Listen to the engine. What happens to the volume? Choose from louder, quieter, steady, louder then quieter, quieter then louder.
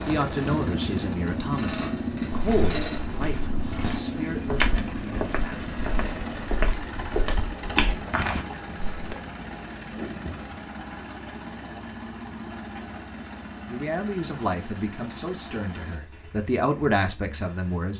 quieter.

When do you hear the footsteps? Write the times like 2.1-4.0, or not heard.
2.3-9.2.